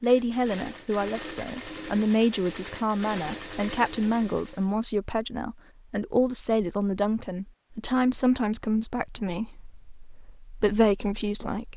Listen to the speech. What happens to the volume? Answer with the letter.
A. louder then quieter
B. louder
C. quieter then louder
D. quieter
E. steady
E.